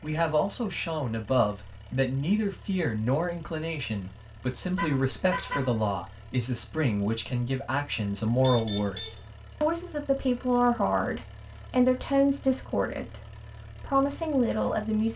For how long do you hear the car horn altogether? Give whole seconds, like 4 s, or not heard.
2 s.